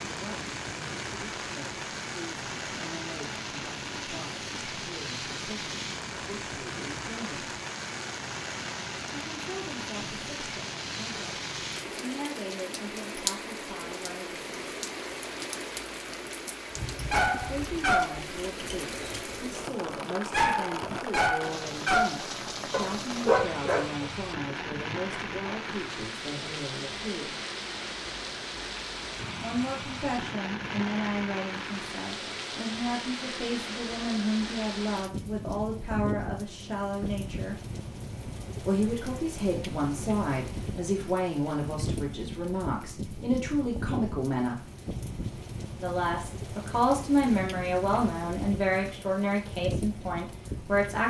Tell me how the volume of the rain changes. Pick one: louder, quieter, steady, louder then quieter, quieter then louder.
steady.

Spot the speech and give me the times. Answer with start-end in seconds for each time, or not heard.
0.1-7.5, 9.1-14.4, 17.5-27.4, 29.4-37.5, 38.6-44.6, 45.8-51.0.